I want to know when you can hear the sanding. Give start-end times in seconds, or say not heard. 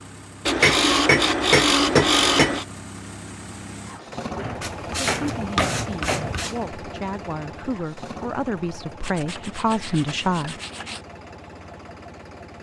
0.5-2.6, 4.6-6.5, 9.0-11.1.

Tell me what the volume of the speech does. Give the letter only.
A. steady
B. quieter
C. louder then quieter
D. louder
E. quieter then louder
D.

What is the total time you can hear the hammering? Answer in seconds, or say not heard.
6 s.